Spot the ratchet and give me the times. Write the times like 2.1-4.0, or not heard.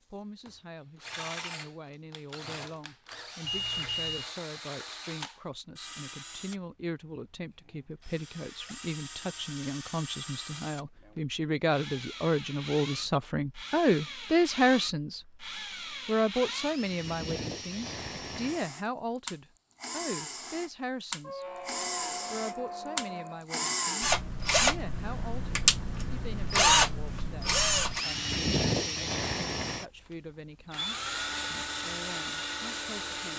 not heard.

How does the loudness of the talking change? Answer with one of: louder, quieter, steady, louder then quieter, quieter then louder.
louder then quieter.